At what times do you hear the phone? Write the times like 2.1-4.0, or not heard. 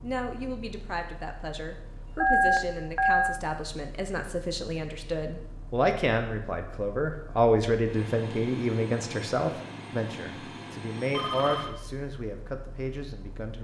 2.2-3.4, 11.1-11.8.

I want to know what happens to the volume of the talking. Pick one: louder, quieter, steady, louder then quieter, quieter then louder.
louder then quieter.